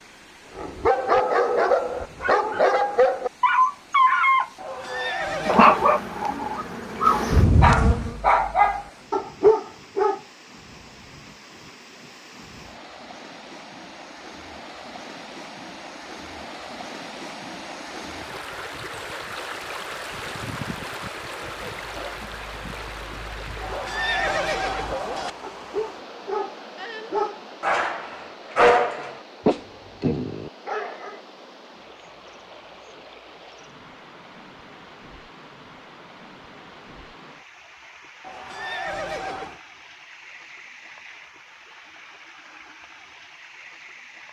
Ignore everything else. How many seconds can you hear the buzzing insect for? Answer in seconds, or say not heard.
3 s.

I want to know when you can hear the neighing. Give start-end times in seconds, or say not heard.
4.5-6.0, 23.6-25.3, 38.2-39.6.